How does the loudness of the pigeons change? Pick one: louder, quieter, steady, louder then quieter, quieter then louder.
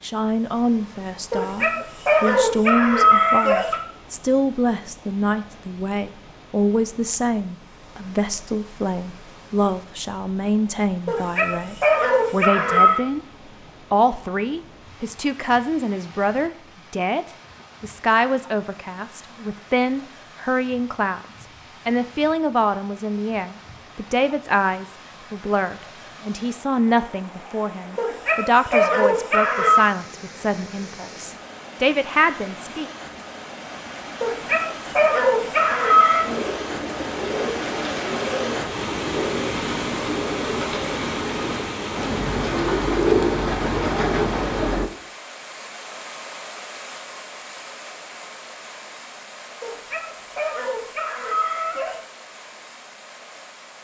louder.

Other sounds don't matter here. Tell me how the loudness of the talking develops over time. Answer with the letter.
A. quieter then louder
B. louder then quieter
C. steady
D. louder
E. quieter
C.